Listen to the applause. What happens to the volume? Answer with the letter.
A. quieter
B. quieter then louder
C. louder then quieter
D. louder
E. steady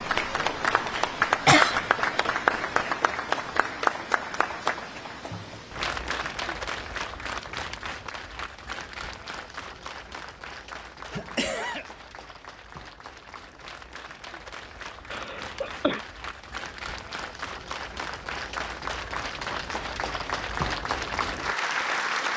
B.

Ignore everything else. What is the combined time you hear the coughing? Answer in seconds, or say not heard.
2 s.